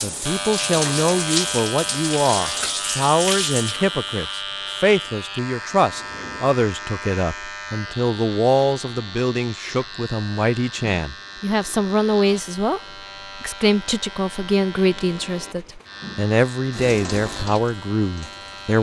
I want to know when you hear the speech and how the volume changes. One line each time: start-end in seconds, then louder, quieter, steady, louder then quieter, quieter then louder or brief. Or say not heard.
0.0-18.7 steady.